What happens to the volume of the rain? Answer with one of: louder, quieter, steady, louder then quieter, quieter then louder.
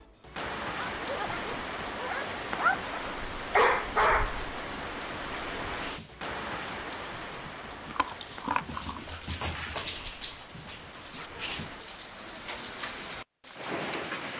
quieter then louder.